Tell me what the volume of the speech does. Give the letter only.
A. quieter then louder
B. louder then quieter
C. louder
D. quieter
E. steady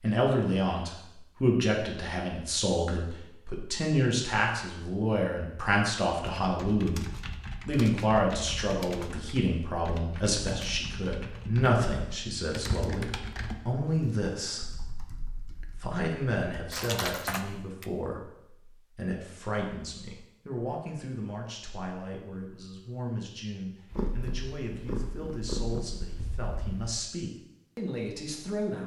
D.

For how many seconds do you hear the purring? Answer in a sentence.
You can hear the purring for 3 seconds altogether.